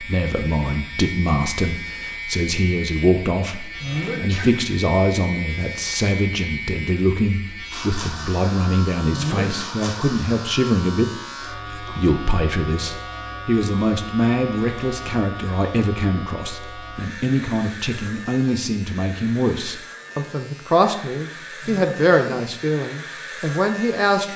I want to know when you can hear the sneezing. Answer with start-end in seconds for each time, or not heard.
3.8-4.6, 9.1-9.7, 21.6-22.2.